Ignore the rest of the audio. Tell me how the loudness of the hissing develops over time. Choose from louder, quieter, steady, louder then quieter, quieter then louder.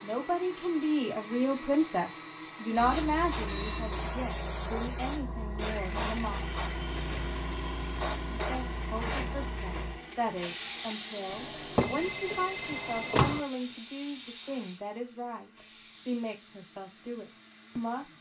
quieter.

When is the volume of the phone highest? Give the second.
4 s.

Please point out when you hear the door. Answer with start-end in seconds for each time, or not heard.
11.8-13.4.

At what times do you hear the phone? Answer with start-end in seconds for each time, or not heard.
2.7-4.0, 11.2-13.5.